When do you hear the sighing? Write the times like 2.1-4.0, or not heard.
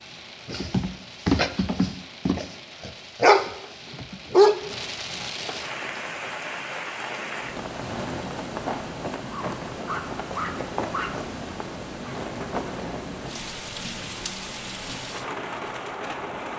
7.8-8.3.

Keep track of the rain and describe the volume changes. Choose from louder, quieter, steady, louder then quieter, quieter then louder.
louder.